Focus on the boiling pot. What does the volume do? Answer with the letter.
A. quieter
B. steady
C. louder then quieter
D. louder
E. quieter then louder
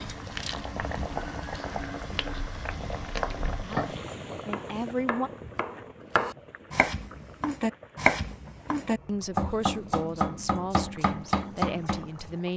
A.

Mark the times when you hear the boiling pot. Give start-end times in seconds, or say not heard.
0.0-12.5.